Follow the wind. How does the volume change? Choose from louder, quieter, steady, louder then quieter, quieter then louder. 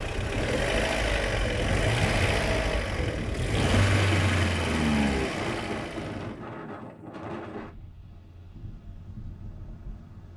quieter.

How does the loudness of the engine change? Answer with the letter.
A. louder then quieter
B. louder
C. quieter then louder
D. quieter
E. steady
E.